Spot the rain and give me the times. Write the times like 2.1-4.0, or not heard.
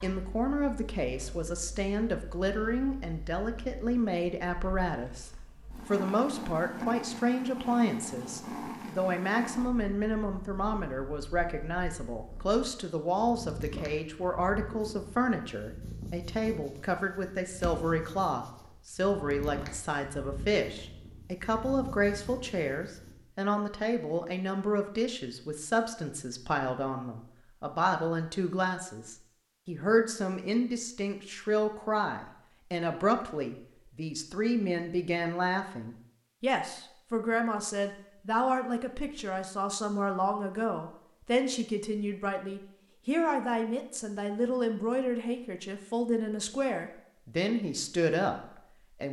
not heard.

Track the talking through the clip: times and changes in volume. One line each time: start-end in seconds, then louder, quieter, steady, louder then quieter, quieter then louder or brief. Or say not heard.
0.0-49.0 steady.